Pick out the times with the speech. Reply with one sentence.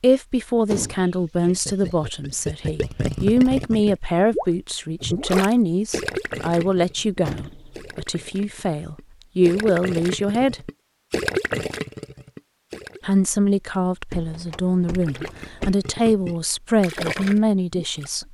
You can hear the speech from 0.0 to 10.7 s and from 13.1 to 18.2 s.